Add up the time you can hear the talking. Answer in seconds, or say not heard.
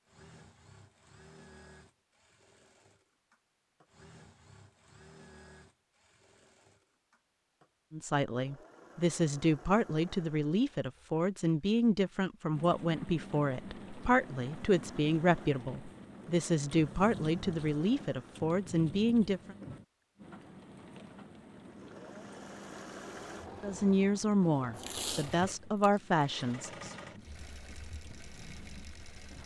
15 s.